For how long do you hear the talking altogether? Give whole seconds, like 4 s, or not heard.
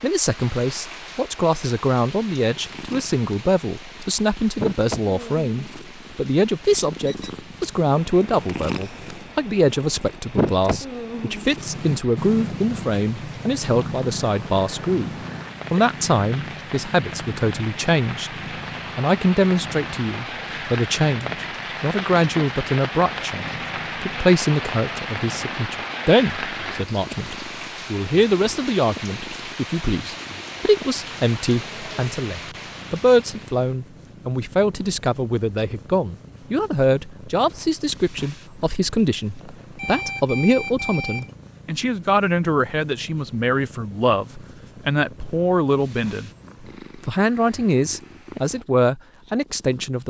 48 s.